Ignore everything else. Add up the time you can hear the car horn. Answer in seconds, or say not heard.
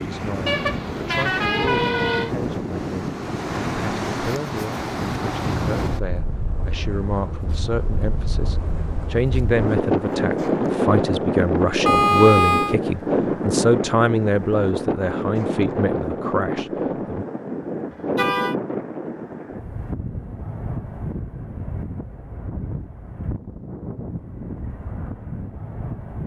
3 s.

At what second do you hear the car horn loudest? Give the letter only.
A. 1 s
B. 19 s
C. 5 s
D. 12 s
D.